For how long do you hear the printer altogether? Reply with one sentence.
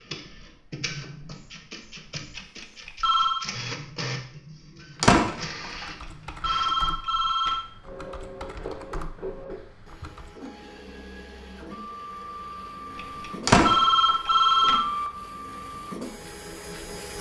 You can hear the printer for 17 seconds altogether.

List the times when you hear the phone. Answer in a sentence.
You can hear the phone from 2.4 to 3.5 s, from 6.0 to 7.7 s and from 12.9 to 14.9 s.